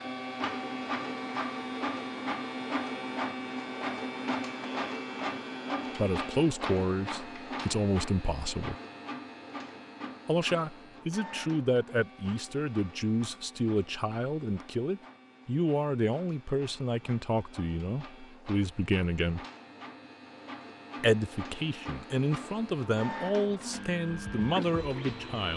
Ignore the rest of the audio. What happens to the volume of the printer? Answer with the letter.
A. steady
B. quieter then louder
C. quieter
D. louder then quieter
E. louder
B.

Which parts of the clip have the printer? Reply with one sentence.
The printer can be heard from 0.0 to 25.5 s.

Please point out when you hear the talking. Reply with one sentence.
You can hear the talking from 6.0 to 8.8 s, from 10.2 to 19.4 s and from 21.0 to 25.5 s.